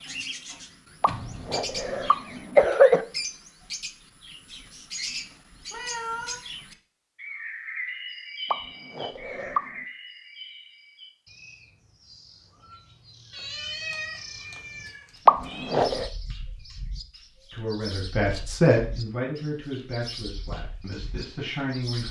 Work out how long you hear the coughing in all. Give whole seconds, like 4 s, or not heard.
4 s.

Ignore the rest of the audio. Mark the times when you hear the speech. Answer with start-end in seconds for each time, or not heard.
17.5-22.0.